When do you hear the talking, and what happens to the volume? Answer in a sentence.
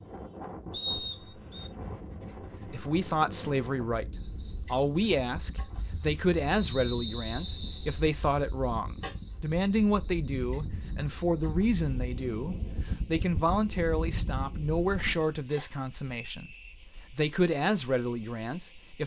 You can hear the talking from 2.7 to 16.5 s, at a steady volume; and briefly from 17.1 to 19.0 s.